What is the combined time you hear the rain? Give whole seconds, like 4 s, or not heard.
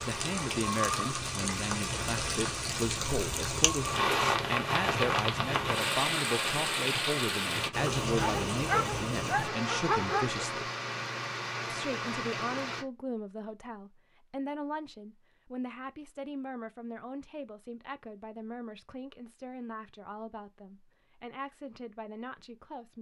13 s.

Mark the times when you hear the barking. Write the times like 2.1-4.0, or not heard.
8.0-10.4.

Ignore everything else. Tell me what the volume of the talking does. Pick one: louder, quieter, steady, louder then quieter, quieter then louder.
quieter.